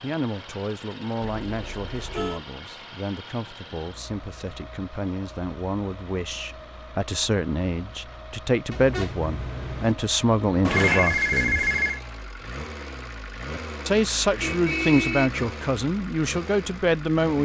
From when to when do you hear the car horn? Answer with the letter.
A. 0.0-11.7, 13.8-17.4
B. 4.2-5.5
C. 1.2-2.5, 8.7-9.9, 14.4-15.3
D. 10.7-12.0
C.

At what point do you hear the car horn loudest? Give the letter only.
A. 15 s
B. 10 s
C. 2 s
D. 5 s
A.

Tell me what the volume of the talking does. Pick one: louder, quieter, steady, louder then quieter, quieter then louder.
louder.